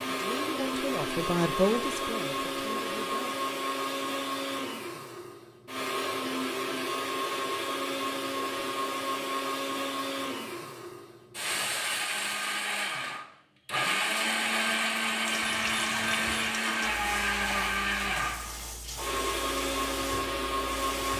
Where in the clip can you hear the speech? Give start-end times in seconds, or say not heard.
0.1-3.4.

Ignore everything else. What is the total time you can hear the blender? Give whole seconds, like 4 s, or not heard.
21 s.